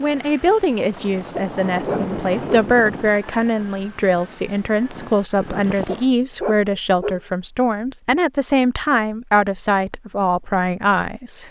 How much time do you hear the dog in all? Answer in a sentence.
You can hear the dog for 3 seconds altogether.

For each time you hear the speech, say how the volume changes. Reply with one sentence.
The speech can be heard from 0.0 to 11.4 s, at a steady volume.